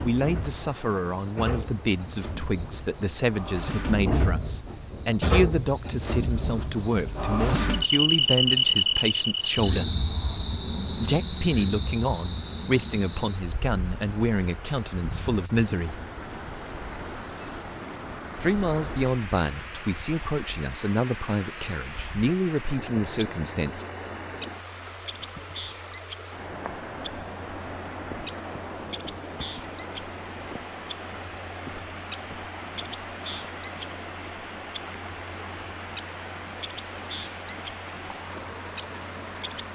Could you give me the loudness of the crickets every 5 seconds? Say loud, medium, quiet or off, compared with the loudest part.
medium, loud, medium, quiet, quiet, quiet, quiet, quiet.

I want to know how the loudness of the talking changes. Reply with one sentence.
The volume of the talking stays about the same.